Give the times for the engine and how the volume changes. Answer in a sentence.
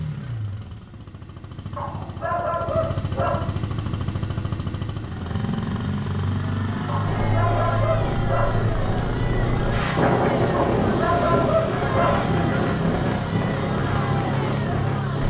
You can hear the engine from 0.0 to 15.2 s, getting louder.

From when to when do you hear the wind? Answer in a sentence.
You can hear the wind from 7.0 to 15.2 s.